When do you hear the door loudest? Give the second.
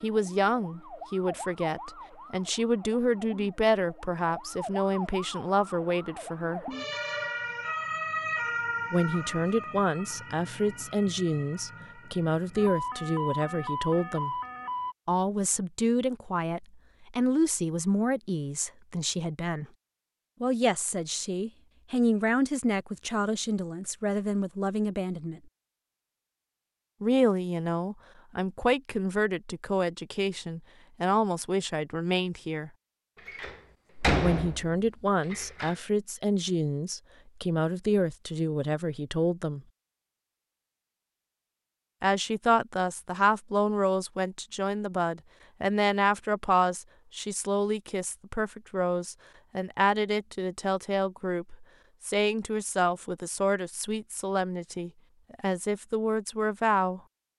34 s.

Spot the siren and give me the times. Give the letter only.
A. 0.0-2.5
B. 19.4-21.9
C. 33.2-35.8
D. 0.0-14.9
D.